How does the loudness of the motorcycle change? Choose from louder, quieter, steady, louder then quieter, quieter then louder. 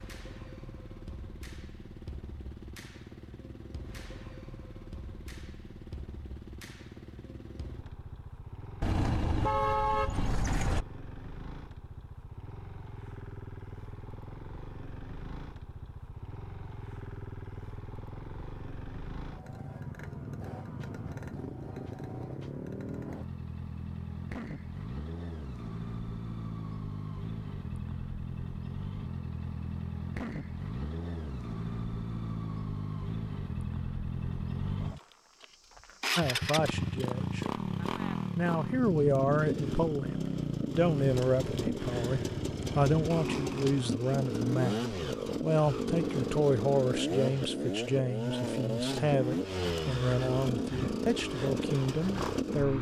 louder.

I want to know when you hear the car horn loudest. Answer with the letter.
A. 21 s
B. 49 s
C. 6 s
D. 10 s
D.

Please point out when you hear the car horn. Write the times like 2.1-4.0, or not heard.
8.8-10.8.